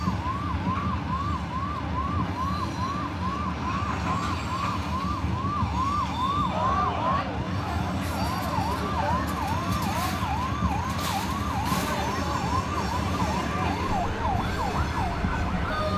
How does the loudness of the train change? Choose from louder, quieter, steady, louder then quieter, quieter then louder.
steady.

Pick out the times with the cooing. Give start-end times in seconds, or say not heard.
not heard.